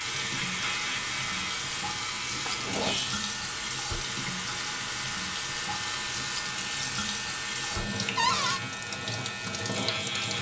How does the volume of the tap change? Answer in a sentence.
The loudness of the tap stays about the same.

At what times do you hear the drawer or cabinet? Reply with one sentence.
The drawer or cabinet can be heard from 2.3 to 3.0 s and from 8.2 to 8.6 s.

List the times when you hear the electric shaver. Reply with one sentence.
The electric shaver can be heard from 0.0 to 10.3 s.